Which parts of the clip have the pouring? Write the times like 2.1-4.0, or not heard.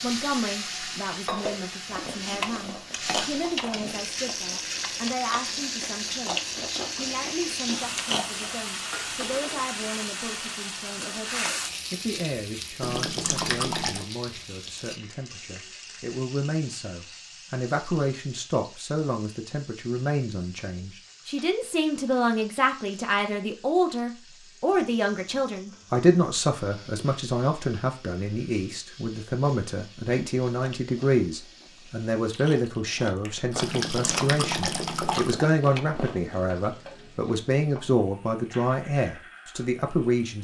12.8-14.1, 33.6-35.5.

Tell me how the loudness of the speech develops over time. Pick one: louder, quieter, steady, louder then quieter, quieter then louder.
louder.